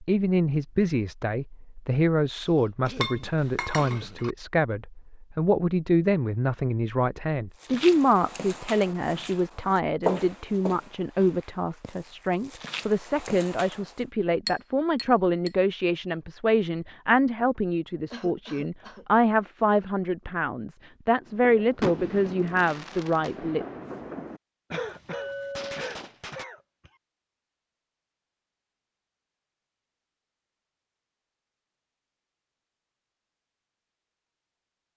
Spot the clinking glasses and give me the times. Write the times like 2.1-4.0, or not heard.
3.0-4.3, 14.4-15.5, 25.1-25.8.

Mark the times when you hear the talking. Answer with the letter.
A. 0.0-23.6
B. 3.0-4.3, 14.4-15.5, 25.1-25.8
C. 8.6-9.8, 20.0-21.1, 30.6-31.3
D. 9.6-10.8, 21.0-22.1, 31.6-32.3
A.